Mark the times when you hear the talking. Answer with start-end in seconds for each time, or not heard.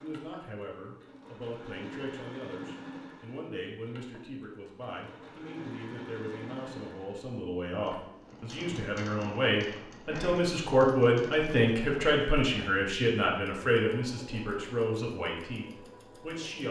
0.0-16.6.